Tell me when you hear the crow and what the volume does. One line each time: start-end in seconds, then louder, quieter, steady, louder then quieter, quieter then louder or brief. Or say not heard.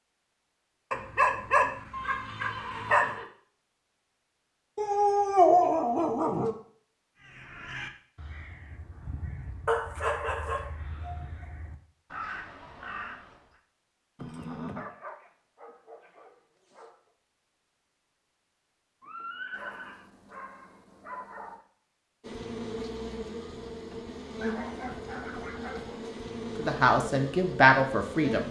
7.2-13.6 quieter then louder.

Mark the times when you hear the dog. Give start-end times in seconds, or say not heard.
0.9-3.1, 4.8-6.5, 9.7-11.3, 14.5-16.9, 19.5-21.6, 24.4-26.0.